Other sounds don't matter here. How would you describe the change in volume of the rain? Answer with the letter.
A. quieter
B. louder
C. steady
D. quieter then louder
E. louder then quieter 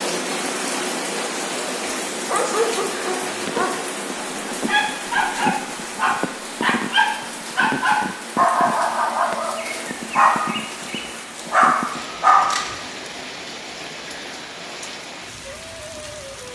A.